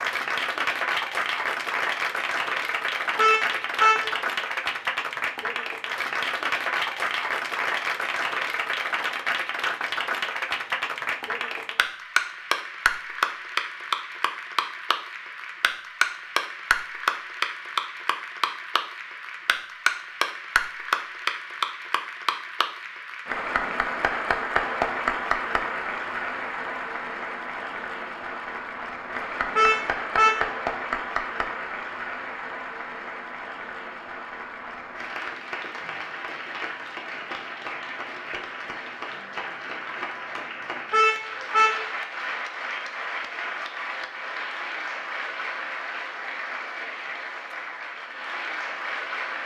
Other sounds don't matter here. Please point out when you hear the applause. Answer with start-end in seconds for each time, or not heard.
0.0-49.4.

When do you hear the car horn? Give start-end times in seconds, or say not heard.
3.1-4.2, 29.6-30.5, 40.9-41.9.